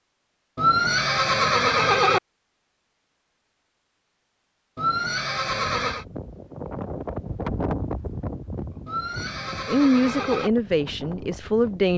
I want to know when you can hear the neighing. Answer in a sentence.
You can hear the neighing from 0.6 to 2.2 s, from 4.8 to 6.0 s and from 8.8 to 10.5 s.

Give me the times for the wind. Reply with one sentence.
The wind can be heard from 5.5 to 11.9 s.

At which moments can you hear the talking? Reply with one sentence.
You can hear the talking from 9.7 to 11.9 s.